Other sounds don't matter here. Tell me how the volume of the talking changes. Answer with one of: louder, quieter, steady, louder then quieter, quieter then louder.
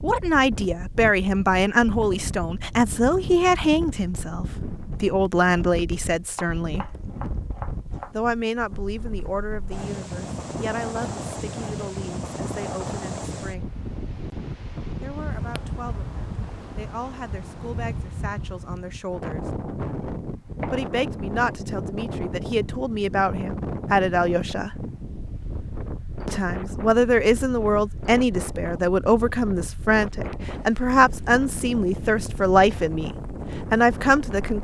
quieter then louder.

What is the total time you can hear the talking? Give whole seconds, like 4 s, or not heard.
29 s.